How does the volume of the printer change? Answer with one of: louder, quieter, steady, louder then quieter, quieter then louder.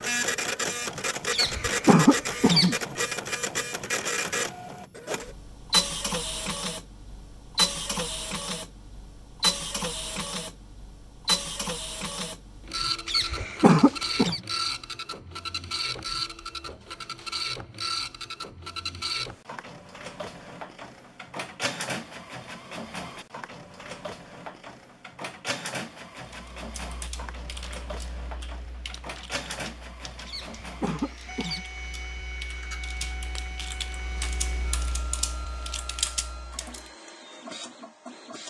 quieter.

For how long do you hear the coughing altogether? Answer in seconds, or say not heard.
4 s.